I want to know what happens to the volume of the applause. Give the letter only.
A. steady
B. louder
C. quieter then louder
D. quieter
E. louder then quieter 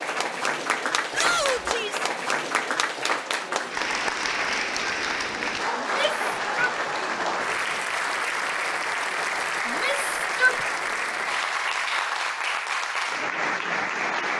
A.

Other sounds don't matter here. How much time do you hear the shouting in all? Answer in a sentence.
You can hear the shouting for 3 seconds altogether.